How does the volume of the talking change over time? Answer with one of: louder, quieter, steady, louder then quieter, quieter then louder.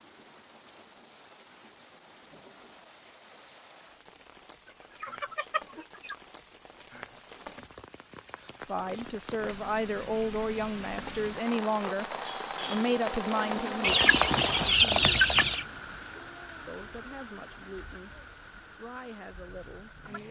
quieter.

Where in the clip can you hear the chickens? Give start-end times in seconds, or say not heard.
5.0-6.2, 13.8-15.7.